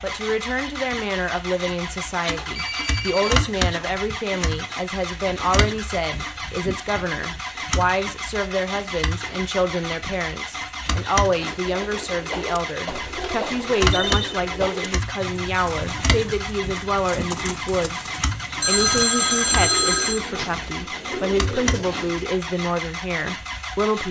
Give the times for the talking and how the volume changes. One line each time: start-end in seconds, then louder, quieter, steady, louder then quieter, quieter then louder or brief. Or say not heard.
0.0-24.0 steady.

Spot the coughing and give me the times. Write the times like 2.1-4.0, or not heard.
not heard.